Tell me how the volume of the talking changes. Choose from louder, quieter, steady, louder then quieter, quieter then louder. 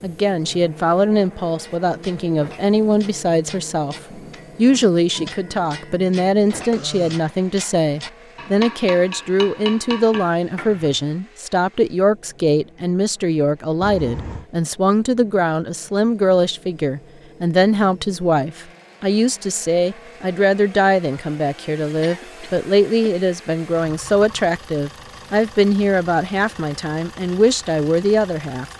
steady.